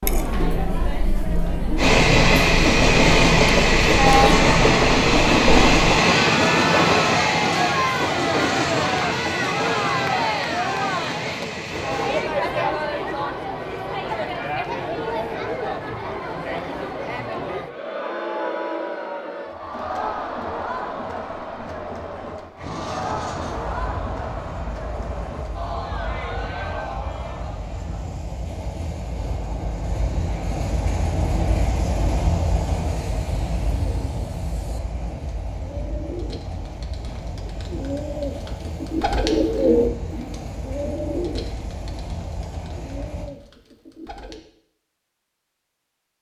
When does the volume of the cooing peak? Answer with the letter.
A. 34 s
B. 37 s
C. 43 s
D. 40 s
D.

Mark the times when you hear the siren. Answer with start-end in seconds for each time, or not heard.
not heard.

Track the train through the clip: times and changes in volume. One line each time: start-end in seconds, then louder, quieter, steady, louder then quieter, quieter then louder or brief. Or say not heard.
1.8-12.2 quieter
22.6-43.3 louder then quieter.